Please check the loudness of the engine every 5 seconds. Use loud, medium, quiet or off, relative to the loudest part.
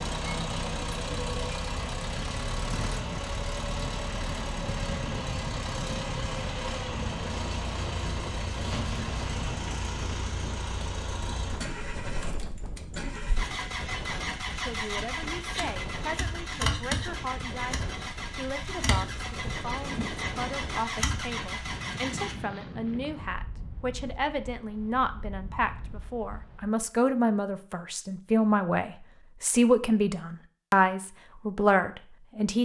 loud, loud, loud, loud, loud, off, off.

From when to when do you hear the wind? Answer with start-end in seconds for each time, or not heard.
0.0-26.8.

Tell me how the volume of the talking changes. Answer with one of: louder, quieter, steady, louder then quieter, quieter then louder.
louder.